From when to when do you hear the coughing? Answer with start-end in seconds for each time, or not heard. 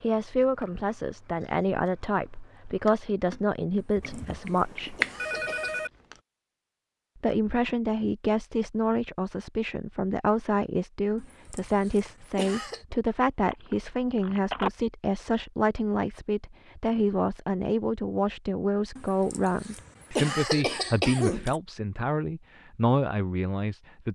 3.8-5.8, 11.2-12.8, 18.9-21.6.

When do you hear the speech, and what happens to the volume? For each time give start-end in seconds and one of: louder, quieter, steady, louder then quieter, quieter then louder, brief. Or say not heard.
0.0-5.0 steady
7.2-24.1 steady.